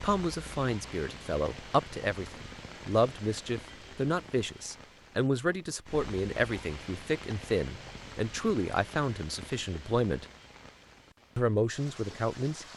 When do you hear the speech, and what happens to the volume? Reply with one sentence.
The speech can be heard from 0.0 to 10.2 s, at a steady volume; and briefly from 11.3 to 12.7 s.